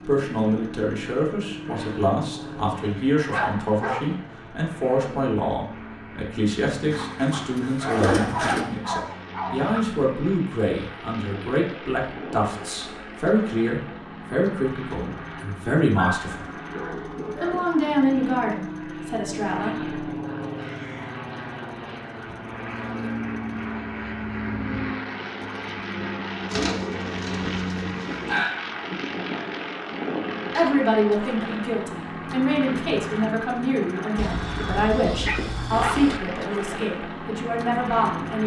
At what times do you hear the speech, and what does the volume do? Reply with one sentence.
The speech can be heard from 0.1 to 16.4 s, at a steady volume; briefly from 17.4 to 19.9 s; and from 30.5 to 38.4 s, at a steady volume.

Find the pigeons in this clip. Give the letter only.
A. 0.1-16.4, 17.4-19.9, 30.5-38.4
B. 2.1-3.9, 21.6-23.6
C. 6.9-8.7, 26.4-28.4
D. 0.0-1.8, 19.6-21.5
C.